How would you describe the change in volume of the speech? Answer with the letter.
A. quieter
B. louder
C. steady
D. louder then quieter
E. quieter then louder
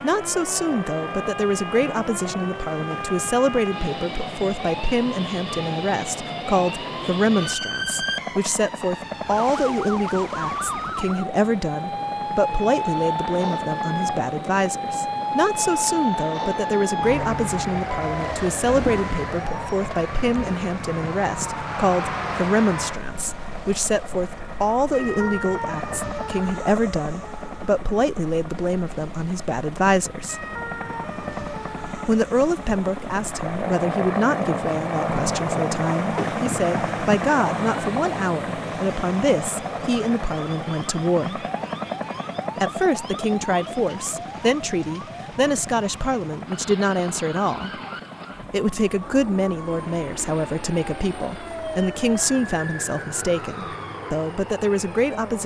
C.